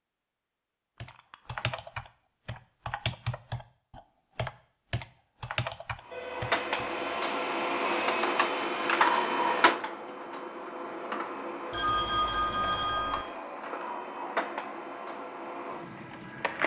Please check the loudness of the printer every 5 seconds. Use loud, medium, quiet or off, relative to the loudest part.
off, loud, medium, medium.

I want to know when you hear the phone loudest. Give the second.
12 s.